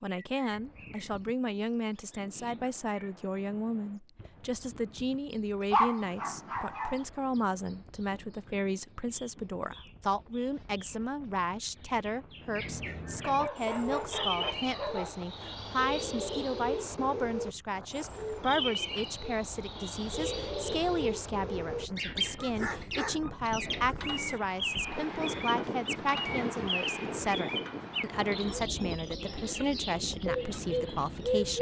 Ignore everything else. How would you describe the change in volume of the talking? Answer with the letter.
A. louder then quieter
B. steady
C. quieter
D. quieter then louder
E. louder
B.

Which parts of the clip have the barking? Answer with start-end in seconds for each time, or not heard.
5.7-7.0, 13.2-15.2, 22.4-24.2.